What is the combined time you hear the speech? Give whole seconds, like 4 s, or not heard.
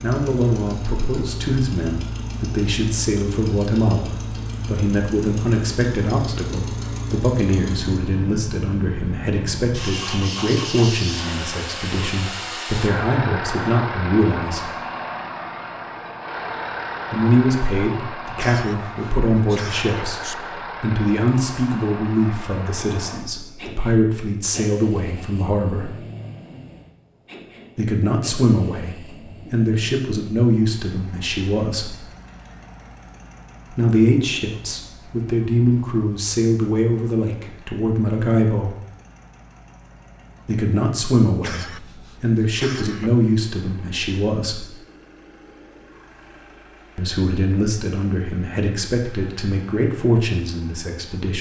41 s.